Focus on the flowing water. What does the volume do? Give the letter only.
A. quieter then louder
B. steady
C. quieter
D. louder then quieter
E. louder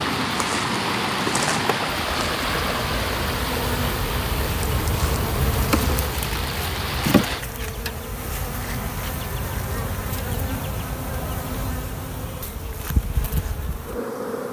C.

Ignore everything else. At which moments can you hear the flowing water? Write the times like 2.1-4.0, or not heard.
0.0-7.5.